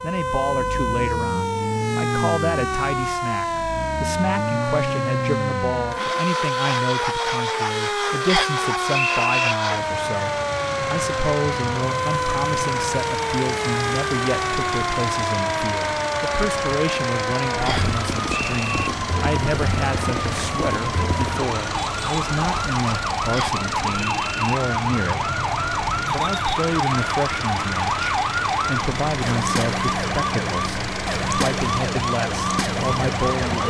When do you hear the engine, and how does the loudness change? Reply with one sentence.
You can hear the engine from 0.0 to 33.6 s, at a steady volume.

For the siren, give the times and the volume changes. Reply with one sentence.
The siren can be heard from 0.0 to 33.6 s, at a steady volume.